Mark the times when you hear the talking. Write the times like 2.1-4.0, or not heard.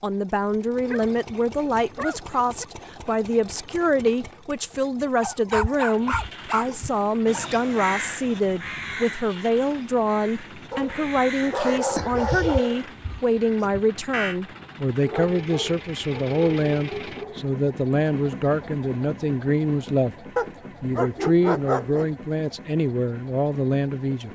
0.0-20.1, 20.8-24.3.